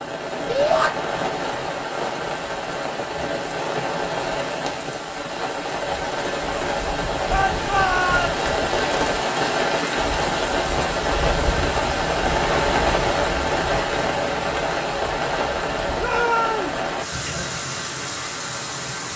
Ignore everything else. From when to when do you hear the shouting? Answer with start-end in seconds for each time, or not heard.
0.5-0.9, 7.3-8.4, 15.9-16.8.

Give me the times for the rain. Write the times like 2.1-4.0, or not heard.
0.0-19.1.